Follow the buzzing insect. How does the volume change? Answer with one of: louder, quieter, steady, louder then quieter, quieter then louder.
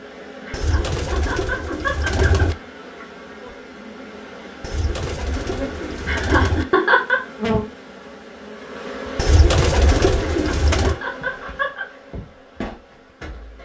louder then quieter.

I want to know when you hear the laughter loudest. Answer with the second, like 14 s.
7 s.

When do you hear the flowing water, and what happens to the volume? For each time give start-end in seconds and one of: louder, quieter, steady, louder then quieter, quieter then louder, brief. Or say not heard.
not heard.